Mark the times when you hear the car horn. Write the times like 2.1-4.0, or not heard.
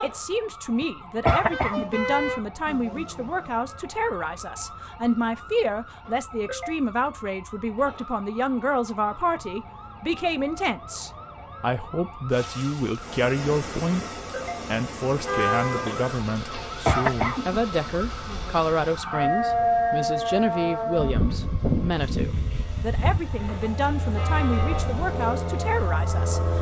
1.2-2.5, 15.2-16.1, 24.1-24.9.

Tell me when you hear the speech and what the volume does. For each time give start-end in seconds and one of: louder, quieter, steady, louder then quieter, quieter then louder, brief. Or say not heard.
0.0-26.5 steady.